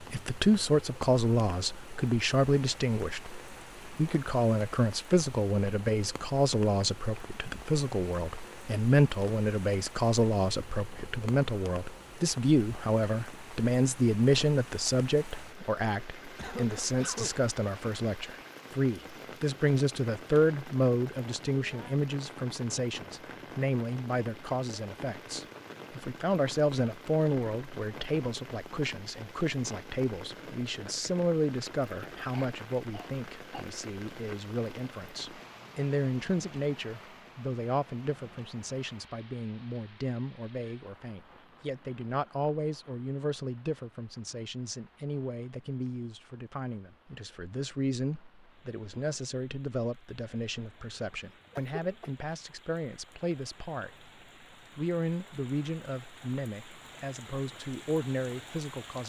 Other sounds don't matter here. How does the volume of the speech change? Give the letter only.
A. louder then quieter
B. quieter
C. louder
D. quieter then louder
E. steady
B.